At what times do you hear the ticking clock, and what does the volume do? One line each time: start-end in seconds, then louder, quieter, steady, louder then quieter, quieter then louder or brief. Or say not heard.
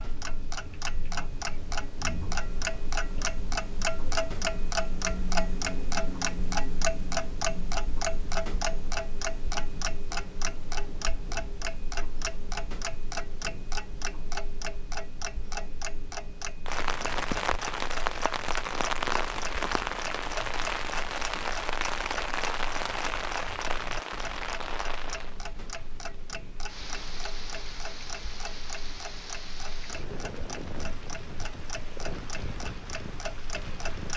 0.0-34.1 quieter.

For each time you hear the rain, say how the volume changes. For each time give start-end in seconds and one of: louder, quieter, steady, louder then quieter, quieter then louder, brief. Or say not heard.
16.6-34.1 quieter.